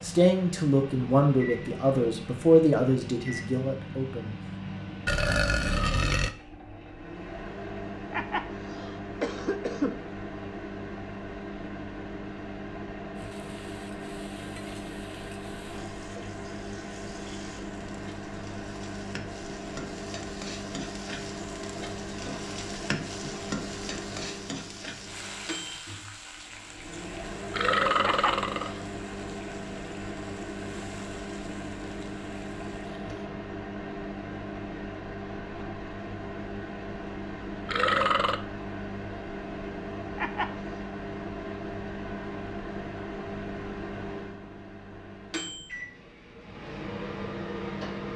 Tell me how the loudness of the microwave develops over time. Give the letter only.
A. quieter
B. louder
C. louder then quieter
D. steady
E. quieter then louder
D.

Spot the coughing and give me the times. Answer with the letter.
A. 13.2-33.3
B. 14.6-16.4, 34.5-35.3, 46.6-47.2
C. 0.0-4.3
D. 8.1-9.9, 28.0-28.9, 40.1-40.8
D.